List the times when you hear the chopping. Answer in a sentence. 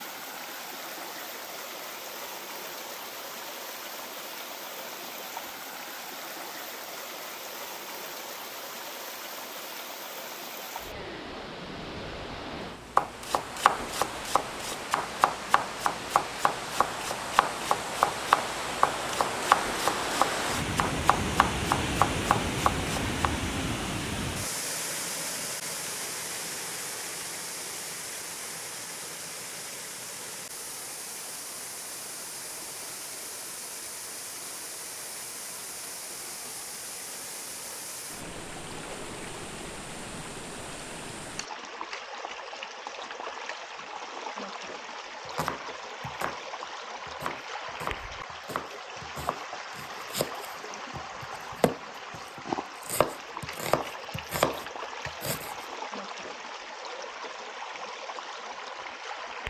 The chopping can be heard from 12.8 to 23.2 s and from 45.2 to 55.6 s.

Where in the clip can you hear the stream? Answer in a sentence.
You can hear the stream from 0.0 to 59.4 s.